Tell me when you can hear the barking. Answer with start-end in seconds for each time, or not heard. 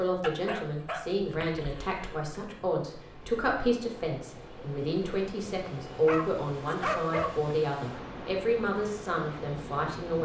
0.2-2.0, 6.0-7.5.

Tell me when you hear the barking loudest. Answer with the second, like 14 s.
7 s.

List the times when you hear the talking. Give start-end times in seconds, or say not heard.
0.0-10.2.